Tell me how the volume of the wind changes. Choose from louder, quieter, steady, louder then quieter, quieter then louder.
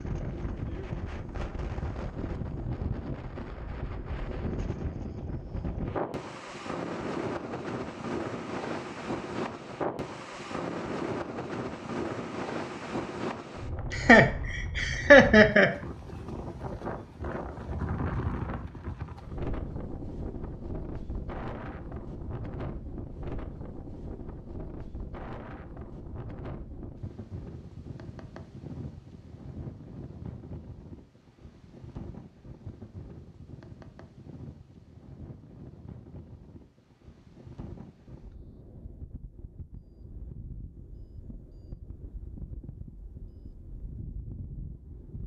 quieter.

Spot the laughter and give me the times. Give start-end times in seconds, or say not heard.
13.9-15.7.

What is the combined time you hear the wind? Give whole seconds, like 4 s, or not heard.
45 s.